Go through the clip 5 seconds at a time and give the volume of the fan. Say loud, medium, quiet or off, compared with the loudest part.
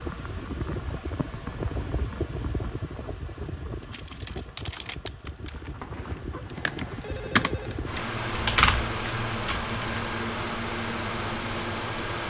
medium, loud, loud.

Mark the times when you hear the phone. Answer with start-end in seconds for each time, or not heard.
5.5-7.8.